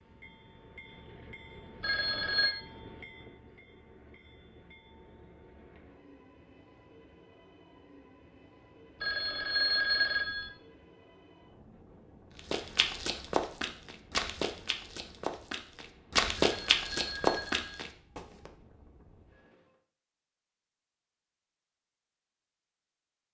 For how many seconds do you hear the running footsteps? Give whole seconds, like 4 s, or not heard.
6 s.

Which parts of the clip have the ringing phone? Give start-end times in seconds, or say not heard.
1.8-2.5, 9.0-10.5, 16.4-17.9.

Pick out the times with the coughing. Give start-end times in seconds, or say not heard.
not heard.